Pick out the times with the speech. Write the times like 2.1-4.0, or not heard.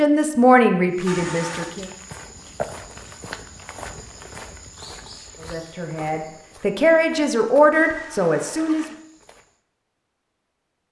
0.0-1.9, 5.3-8.8.